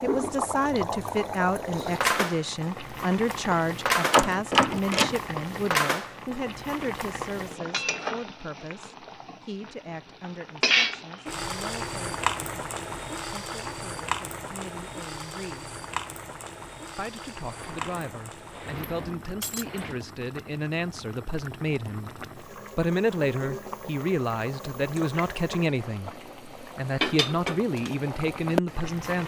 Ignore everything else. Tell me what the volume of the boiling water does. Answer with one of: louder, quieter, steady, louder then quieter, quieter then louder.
quieter then louder.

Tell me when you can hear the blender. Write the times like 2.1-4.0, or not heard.
not heard.